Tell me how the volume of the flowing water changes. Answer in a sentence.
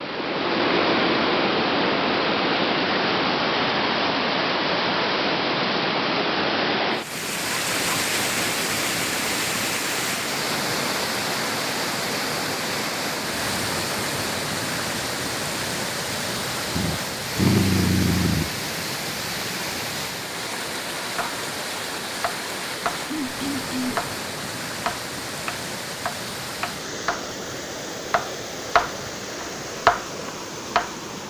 The volume of the flowing water goes down.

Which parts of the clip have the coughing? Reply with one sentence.
You can hear the coughing from 23.1 to 24.1 s.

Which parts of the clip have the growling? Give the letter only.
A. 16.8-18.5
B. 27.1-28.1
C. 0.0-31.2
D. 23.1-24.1
A.